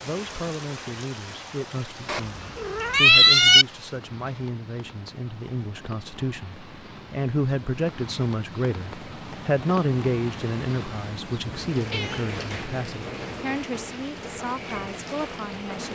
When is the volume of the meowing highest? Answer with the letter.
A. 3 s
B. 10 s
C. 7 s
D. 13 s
A.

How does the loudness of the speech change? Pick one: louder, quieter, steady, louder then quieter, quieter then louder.
louder then quieter.